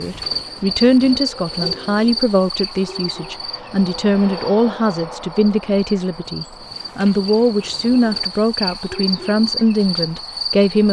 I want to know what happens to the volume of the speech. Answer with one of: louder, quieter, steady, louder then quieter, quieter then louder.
steady.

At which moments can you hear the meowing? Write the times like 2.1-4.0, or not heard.
not heard.